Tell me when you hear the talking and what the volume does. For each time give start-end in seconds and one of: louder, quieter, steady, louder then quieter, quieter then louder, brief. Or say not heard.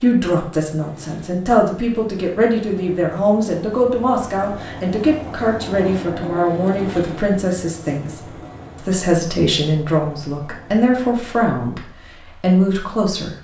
0.0-13.3 steady.